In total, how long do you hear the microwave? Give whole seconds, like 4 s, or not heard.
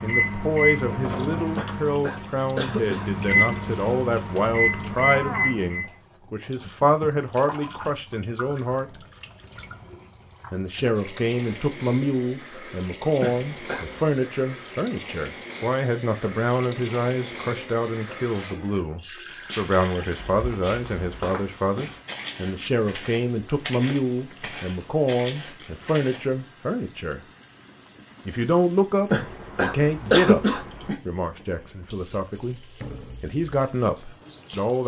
6 s.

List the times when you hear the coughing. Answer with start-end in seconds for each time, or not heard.
1.6-3.2, 13.2-14.2, 29.1-30.9.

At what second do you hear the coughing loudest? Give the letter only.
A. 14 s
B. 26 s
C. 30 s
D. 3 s
C.